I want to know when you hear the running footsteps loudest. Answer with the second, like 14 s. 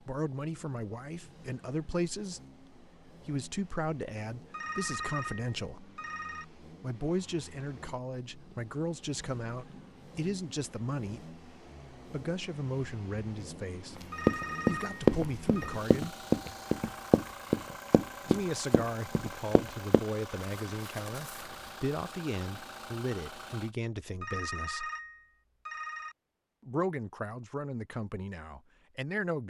15 s.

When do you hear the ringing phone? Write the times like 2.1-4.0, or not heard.
4.5-6.5, 14.1-15.8, 24.2-26.1.